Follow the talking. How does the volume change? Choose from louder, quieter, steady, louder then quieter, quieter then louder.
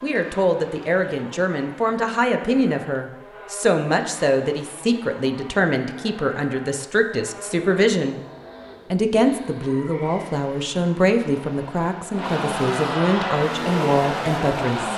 steady.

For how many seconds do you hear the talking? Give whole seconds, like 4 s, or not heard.
14 s.